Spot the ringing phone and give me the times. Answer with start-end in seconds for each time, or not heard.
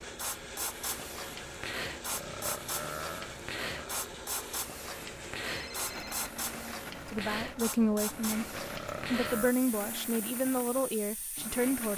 5.5-6.2.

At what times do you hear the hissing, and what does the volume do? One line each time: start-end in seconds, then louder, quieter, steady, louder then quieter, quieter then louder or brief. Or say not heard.
0.0-11.9 quieter.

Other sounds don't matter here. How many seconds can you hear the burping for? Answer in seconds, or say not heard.
3 s.